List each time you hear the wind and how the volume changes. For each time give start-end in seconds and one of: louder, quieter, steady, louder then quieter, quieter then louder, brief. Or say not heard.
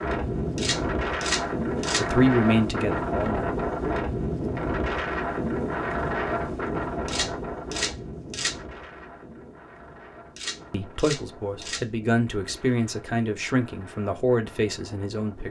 0.0-15.4 quieter.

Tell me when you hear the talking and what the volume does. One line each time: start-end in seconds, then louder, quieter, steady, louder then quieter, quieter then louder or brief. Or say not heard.
1.9-3.5 brief
10.7-15.4 louder.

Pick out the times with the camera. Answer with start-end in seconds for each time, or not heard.
0.6-2.0, 7.0-8.6, 10.3-11.8.